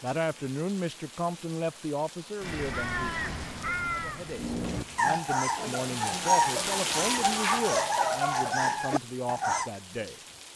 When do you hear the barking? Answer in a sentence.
The barking can be heard from 4.3 to 9.7 s.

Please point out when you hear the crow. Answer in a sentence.
You can hear the crow from 2.4 to 5.2 s.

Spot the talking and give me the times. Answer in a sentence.
The talking can be heard from 0.0 to 10.2 s.